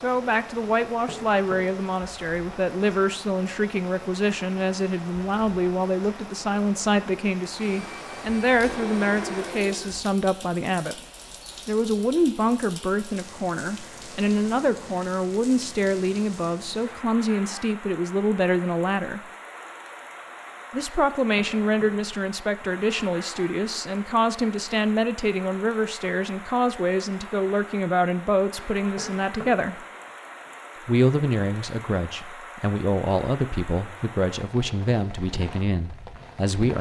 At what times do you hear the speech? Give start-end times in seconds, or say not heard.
0.0-10.9, 11.7-19.2, 20.7-29.8, 30.9-36.7.